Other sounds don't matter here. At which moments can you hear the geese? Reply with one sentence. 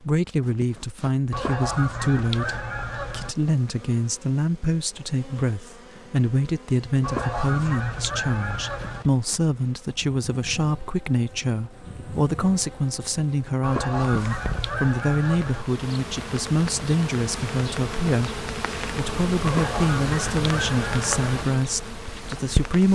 You can hear the geese from 1.3 to 3.4 s, from 7.0 to 9.1 s, from 13.6 to 15.7 s and from 19.4 to 21.4 s.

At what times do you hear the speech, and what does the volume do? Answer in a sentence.
You can hear the speech from 0.0 to 22.9 s, at a steady volume.